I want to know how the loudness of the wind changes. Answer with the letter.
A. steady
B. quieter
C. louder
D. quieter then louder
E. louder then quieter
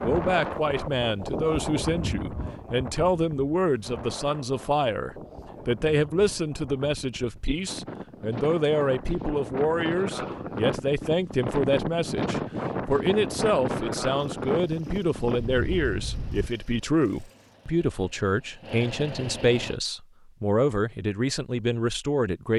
D.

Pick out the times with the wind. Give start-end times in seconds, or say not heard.
0.0-16.5.